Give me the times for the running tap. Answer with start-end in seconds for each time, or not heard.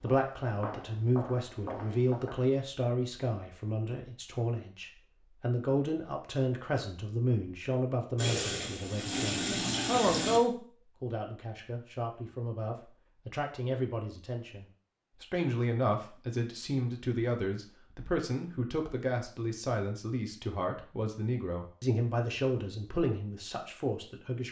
8.2-10.4.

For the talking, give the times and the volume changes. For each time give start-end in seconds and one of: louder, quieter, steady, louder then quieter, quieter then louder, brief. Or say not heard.
0.0-24.4 steady.